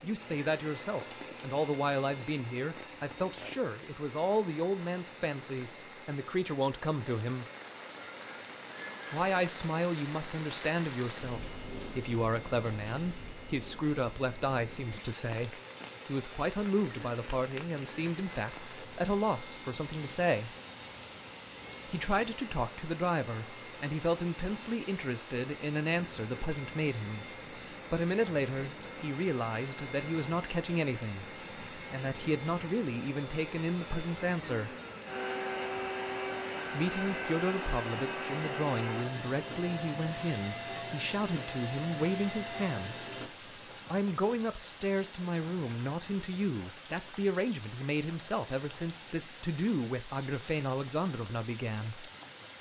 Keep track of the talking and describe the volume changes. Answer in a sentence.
The loudness of the talking stays about the same.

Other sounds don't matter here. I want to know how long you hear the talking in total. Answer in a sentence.
You can hear the talking for 46 seconds altogether.